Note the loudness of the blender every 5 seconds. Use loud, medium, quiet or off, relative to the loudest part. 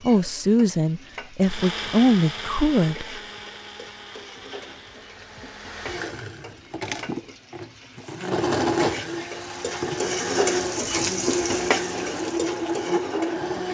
medium, loud, loud.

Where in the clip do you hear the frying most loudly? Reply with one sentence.
The loudest moment of the frying is at 11 seconds.